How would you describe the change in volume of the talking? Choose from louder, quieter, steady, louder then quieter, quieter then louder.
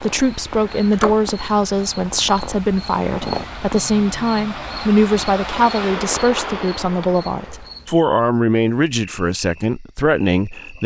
steady.